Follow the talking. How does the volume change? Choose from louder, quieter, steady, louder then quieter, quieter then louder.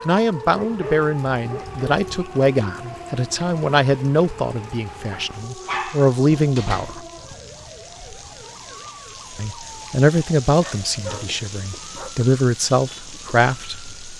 steady.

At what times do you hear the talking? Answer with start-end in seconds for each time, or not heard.
0.1-7.0, 9.3-14.1.